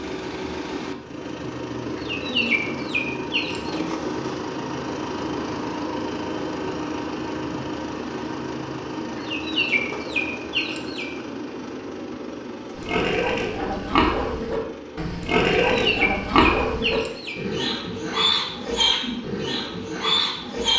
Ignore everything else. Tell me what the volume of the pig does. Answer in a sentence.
The volume of the pig stays about the same.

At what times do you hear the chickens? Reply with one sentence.
The chickens can be heard from 1.9 to 3.9 s, from 9.2 to 11.1 s and from 15.7 to 17.4 s.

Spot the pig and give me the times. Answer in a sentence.
You can hear the pig from 12.8 to 20.7 s.